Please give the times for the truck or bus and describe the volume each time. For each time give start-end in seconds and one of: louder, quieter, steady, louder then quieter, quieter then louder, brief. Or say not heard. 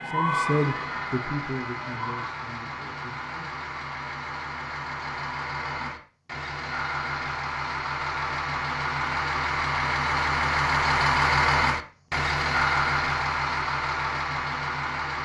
0.0-15.2 louder.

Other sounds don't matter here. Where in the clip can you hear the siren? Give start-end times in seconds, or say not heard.
0.0-2.3.